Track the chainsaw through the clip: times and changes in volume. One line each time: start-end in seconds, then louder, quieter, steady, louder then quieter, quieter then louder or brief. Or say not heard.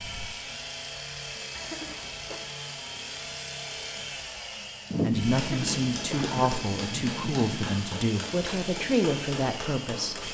0.0-10.2 steady.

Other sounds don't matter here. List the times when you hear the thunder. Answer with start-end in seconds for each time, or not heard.
4.9-7.8.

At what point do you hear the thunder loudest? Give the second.
5 s.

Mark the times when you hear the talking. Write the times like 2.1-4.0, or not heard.
5.0-10.2.